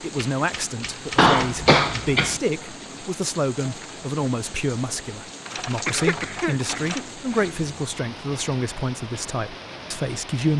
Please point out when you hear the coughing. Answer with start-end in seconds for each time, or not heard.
1.1-2.4, 5.8-7.6.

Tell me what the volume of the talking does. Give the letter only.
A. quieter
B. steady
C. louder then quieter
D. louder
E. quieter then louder
B.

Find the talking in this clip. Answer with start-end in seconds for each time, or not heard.
0.0-10.5.